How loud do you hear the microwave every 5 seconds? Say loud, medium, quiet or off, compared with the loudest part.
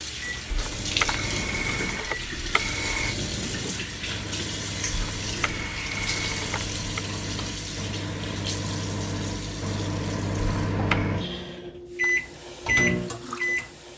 medium, medium, loud.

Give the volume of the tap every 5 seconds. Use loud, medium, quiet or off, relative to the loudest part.
loud, loud, medium.